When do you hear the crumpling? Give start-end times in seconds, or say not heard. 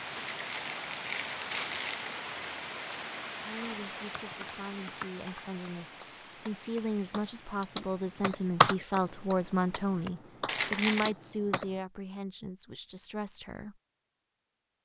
0.1-2.3, 10.4-11.1.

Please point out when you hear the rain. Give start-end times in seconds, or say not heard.
0.0-10.2.